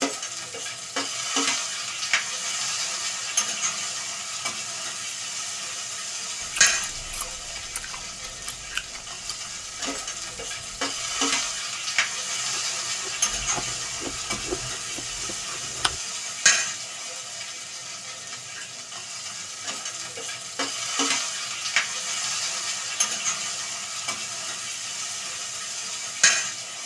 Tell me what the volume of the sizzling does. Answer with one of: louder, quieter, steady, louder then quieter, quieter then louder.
steady.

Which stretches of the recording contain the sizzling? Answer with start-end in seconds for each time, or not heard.
0.0-26.8.